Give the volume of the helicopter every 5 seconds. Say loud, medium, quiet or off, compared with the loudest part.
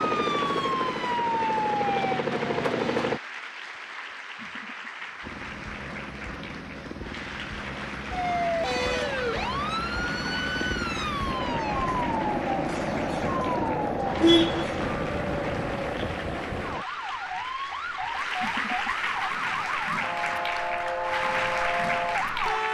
loud, medium, loud, loud, off.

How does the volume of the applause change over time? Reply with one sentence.
The volume of the applause goes up.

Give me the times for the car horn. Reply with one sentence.
You can hear the car horn from 13.6 to 14.7 s.